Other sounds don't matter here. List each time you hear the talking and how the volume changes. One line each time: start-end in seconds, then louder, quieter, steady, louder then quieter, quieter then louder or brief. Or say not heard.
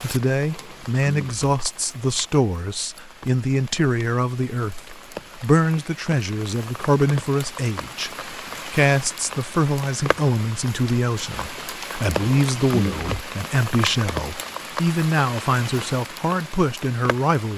0.0-17.5 steady.